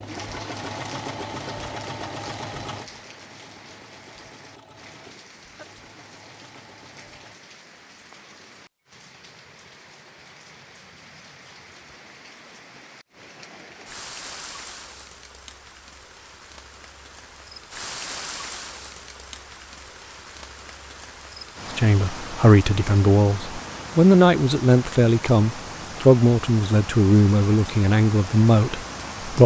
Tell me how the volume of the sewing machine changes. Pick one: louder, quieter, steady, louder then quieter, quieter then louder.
quieter.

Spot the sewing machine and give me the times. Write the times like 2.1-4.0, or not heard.
0.0-7.4.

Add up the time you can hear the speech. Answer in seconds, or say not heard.
8 s.